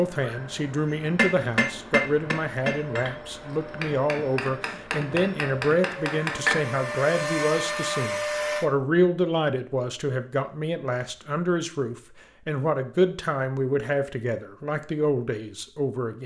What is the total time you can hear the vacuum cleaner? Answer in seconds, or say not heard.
9 s.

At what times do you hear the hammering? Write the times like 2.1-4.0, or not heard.
0.9-6.7.